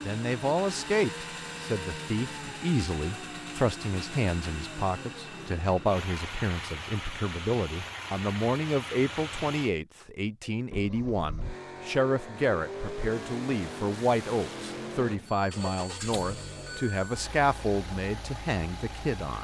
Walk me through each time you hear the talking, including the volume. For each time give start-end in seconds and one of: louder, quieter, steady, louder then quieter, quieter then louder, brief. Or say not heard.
0.1-19.3 steady.